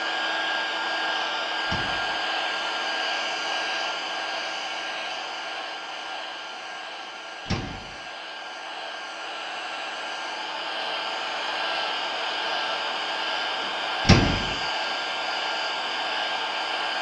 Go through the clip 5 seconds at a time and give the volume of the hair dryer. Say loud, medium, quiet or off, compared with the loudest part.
loud, medium, loud, loud.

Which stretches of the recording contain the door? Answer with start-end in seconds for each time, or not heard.
1.6-2.2, 7.5-8.0, 14.1-14.6.